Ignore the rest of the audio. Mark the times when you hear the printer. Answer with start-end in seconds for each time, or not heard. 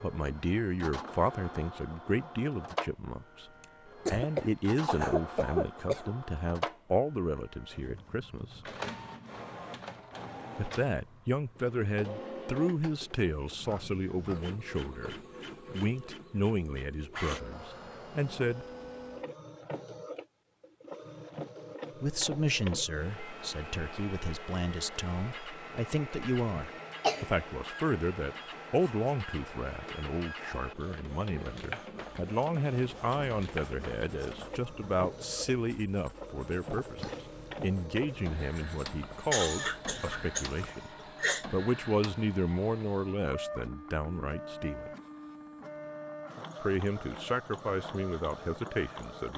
0.0-49.3.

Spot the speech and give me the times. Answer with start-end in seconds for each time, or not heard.
0.0-3.5, 4.1-8.6, 10.6-18.6, 22.0-40.9, 41.5-44.9, 46.6-49.3.